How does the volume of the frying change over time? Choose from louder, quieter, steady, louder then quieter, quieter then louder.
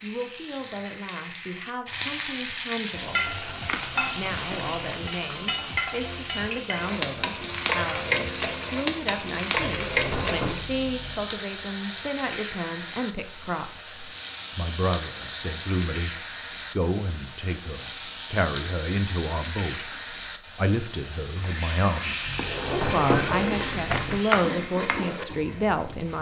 steady.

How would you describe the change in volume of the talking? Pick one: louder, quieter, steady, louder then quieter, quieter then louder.
louder.